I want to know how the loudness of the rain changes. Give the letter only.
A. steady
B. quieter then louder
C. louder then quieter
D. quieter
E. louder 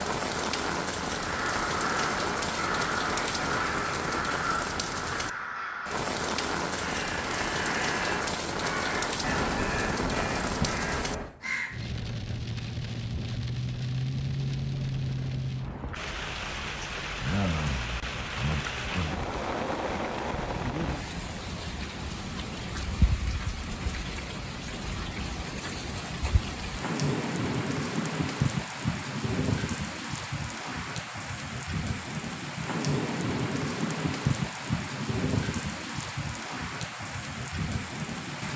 A.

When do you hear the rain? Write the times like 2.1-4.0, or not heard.
0.0-38.5.